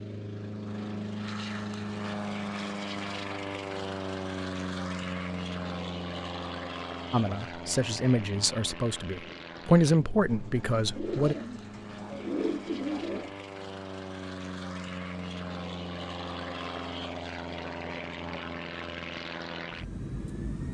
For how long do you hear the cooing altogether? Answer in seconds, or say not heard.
4 s.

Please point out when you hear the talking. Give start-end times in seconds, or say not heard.
7.1-11.3.